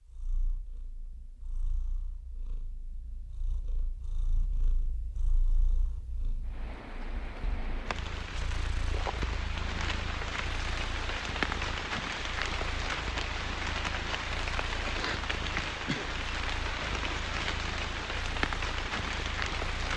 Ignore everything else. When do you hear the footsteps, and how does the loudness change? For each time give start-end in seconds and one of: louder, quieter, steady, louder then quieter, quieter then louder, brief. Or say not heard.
not heard.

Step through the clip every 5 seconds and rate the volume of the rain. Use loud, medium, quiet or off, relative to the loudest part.
off, medium, loud, loud.